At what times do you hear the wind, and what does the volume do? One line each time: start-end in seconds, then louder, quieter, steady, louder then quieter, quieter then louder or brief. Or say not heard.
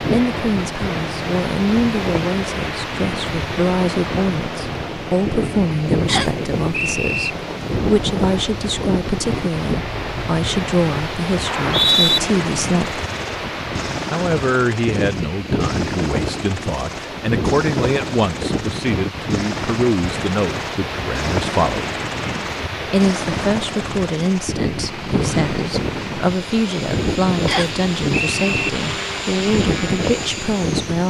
0.0-31.0 steady.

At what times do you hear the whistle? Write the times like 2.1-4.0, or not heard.
6.0-7.3, 11.4-12.2, 27.4-28.7.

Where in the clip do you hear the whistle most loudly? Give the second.
12 s.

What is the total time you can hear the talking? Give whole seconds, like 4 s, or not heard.
29 s.